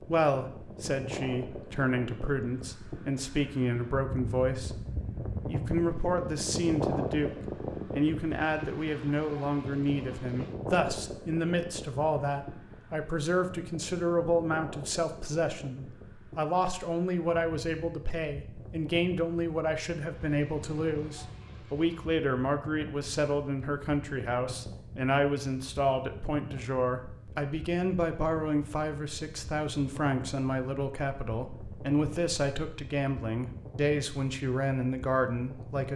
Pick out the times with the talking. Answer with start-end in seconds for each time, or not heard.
0.0-7.3, 7.9-35.9.